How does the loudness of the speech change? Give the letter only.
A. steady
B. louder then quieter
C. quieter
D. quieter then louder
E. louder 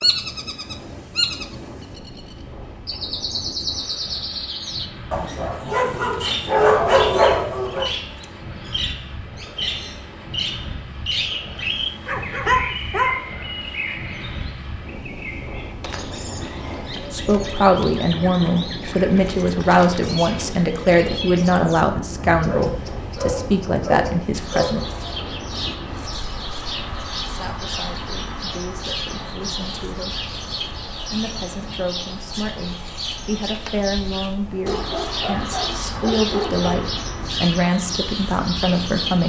D.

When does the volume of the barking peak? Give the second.
7 s.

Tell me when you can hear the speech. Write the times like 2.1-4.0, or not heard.
17.1-24.8, 27.2-30.3, 31.1-39.2.